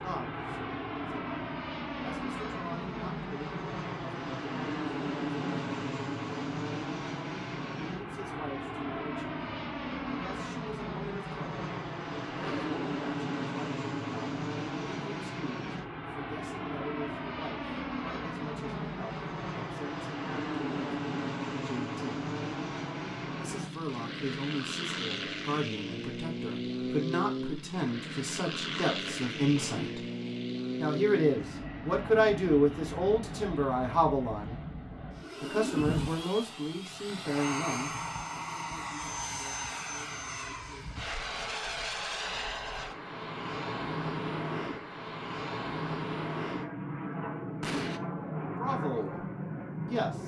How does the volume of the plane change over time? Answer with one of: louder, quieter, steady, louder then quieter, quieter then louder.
steady.